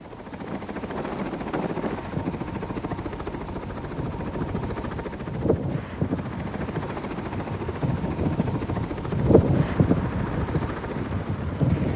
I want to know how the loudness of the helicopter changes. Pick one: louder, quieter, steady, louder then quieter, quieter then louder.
steady.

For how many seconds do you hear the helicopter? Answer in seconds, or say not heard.
12 s.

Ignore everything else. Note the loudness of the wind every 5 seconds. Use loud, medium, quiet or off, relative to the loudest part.
medium, loud, loud.